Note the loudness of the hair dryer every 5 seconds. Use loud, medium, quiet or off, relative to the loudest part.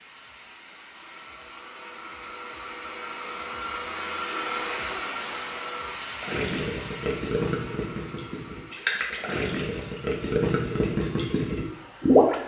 loud, loud, quiet.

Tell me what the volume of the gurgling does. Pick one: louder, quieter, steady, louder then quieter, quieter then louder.
quieter then louder.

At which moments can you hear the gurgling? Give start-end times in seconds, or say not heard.
6.1-12.3.